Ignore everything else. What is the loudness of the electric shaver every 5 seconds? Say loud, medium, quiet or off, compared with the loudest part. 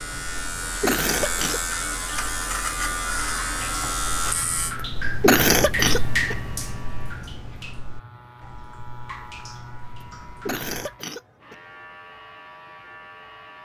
loud, quiet, quiet.